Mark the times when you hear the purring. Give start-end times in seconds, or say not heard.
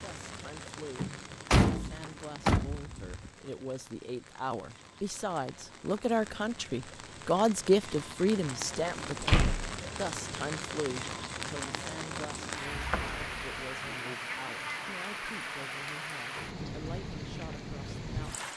not heard.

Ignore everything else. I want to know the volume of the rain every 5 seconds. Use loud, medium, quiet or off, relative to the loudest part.
medium, medium, loud, loud.